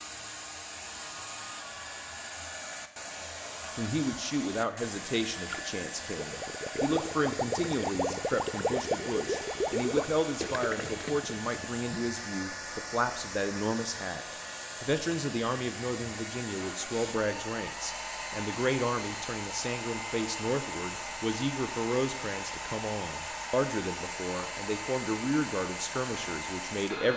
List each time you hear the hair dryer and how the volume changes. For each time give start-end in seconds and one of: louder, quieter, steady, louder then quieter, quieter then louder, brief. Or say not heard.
0.0-27.1 steady.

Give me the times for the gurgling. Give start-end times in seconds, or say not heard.
5.5-12.0.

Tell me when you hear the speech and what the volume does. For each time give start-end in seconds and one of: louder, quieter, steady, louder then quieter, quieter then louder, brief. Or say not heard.
3.8-27.1 steady.